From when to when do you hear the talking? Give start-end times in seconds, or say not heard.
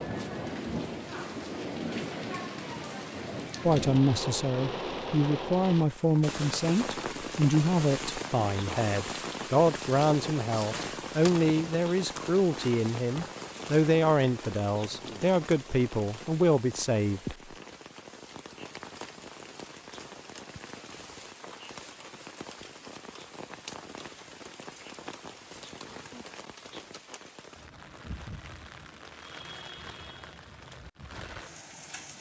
3.6-17.4.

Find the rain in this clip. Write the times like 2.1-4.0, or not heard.
0.0-32.1.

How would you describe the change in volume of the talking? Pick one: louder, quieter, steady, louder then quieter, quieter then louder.
steady.